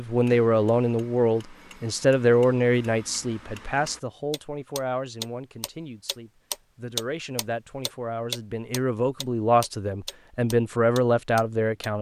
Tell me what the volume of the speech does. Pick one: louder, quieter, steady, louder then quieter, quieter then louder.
quieter then louder.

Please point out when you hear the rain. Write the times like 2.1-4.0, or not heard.
not heard.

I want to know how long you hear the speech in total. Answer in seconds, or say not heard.
12 s.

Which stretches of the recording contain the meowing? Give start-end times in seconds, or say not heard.
not heard.